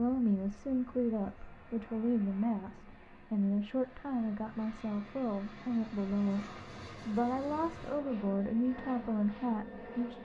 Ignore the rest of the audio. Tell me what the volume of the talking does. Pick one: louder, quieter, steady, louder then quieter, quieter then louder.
steady.